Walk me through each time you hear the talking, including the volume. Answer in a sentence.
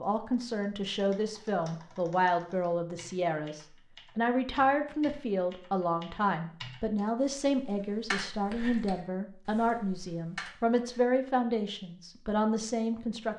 You can hear the talking from 0.0 to 13.3 s, at a steady volume.